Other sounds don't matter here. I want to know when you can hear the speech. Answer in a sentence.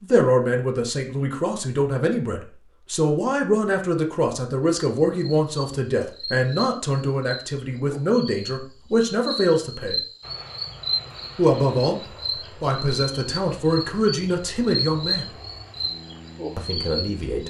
The speech can be heard from 0.0 to 10.0 s, from 11.3 to 12.0 s, from 12.6 to 15.3 s and from 16.6 to 17.4 s.